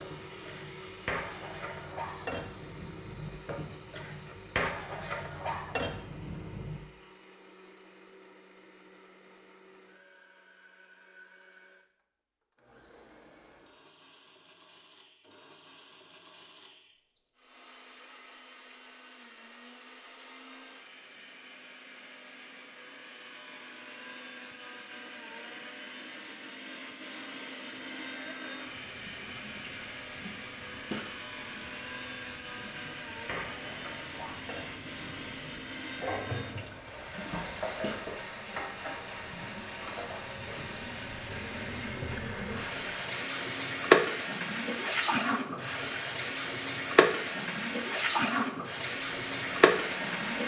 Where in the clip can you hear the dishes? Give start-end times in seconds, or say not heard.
0.0-6.8, 32.6-40.8.